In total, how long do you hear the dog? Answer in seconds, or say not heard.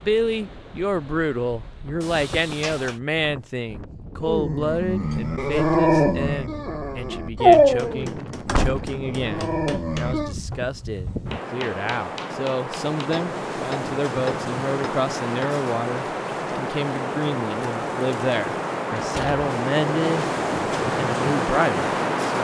6 s.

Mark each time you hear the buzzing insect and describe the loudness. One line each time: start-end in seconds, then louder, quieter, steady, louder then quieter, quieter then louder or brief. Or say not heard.
not heard.